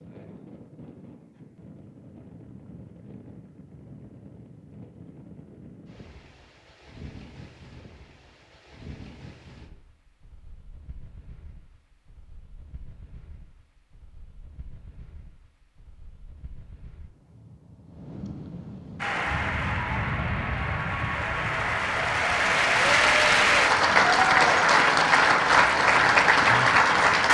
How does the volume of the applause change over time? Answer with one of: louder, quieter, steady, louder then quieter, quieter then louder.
louder.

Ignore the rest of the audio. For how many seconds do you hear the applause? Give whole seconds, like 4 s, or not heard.
8 s.